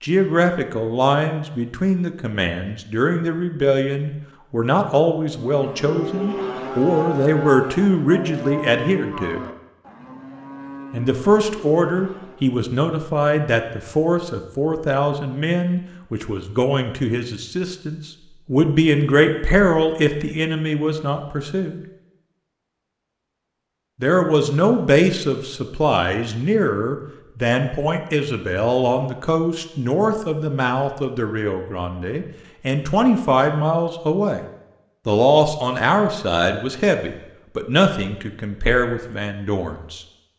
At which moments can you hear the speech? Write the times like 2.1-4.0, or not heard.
0.0-9.4, 10.9-21.9, 24.0-34.5, 35.0-40.0.